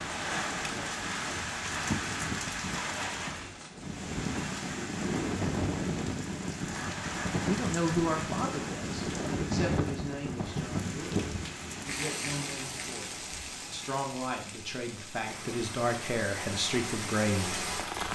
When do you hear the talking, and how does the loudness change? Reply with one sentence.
The talking can be heard from 7.5 to 18.1 s, getting quieter then louder.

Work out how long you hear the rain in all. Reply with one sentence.
You can hear the rain for 18 seconds altogether.